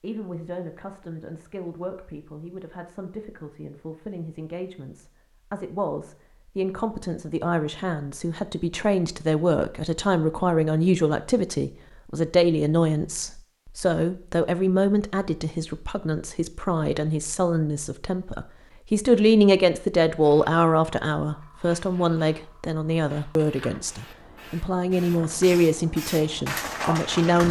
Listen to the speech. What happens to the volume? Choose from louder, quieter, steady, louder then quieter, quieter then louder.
louder.